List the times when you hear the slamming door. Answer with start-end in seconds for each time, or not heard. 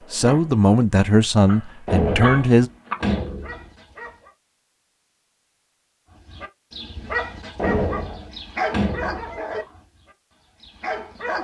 1.9-3.6, 7.5-9.4.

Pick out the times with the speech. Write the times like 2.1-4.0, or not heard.
0.1-2.7.